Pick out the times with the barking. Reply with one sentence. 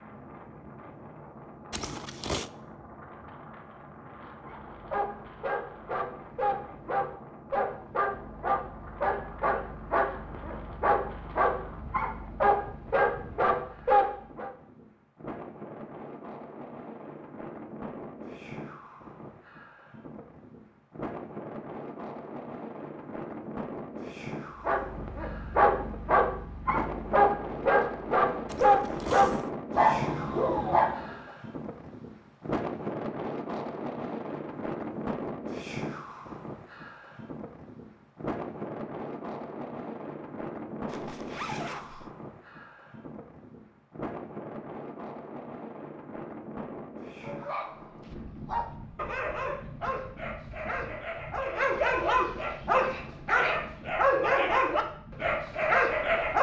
You can hear the barking from 4.5 to 14.5 s, from 24.6 to 31.1 s and from 47.1 to 56.3 s.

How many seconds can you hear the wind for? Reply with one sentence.
You can hear the wind for 56 seconds altogether.